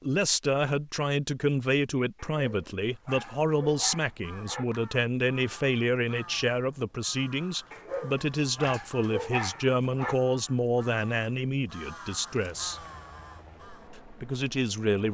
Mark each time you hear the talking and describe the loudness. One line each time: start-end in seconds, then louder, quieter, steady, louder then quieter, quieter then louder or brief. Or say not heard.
0.0-12.8 steady
13.9-15.0 brief.